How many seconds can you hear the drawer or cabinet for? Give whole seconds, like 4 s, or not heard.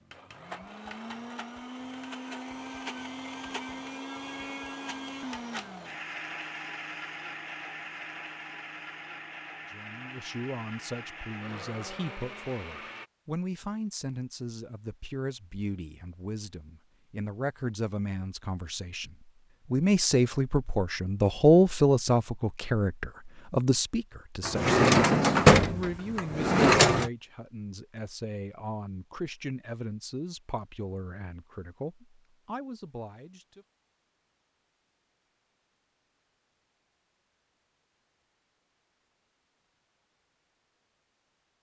3 s.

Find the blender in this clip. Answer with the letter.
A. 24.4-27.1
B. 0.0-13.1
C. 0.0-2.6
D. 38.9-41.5
B.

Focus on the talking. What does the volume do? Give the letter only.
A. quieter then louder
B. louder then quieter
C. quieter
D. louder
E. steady
B.